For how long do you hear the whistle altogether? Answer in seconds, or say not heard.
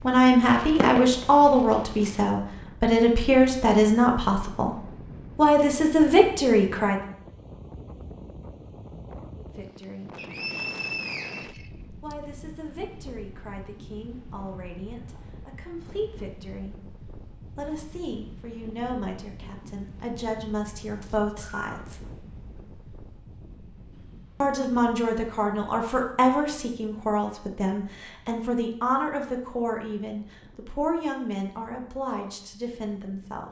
3 s.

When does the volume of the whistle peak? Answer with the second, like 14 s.
11 s.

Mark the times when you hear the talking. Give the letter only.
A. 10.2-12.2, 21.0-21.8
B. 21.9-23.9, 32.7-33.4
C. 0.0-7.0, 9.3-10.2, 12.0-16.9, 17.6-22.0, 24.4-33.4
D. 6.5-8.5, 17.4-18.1
C.